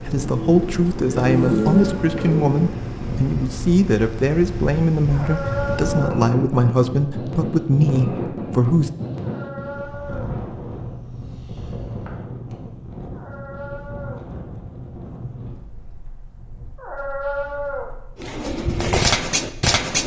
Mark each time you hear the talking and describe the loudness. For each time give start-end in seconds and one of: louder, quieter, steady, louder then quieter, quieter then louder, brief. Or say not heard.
0.0-8.9 steady.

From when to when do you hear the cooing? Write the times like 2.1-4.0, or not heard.
0.0-2.8, 18.1-20.0.